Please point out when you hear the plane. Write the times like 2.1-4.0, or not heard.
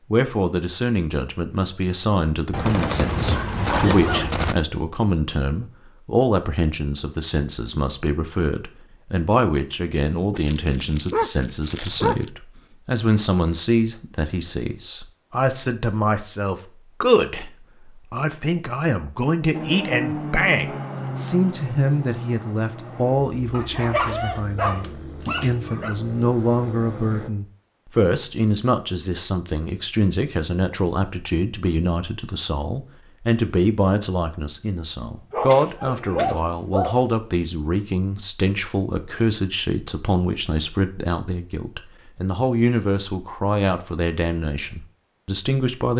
19.5-27.3.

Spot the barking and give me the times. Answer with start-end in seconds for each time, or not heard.
10.3-12.3, 23.5-25.9, 35.3-37.0.